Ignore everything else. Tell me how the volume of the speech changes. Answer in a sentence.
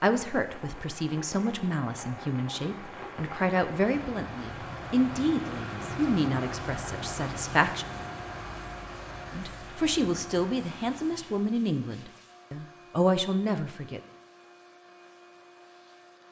The loudness of the speech stays about the same.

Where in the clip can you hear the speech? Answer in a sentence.
The speech can be heard from 0.0 to 7.8 s and from 9.3 to 14.0 s.